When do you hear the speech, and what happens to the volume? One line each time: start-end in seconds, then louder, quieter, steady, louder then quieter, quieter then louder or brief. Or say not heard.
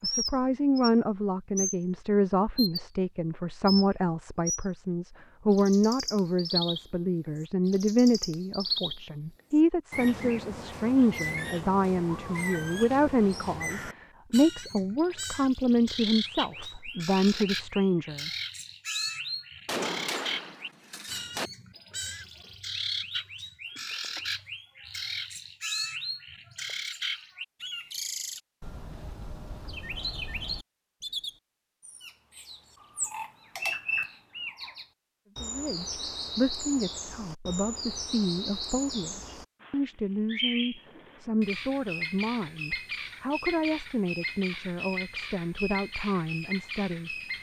0.0-18.3 steady
35.4-47.1 steady.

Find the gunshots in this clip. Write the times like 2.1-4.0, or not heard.
19.6-21.5.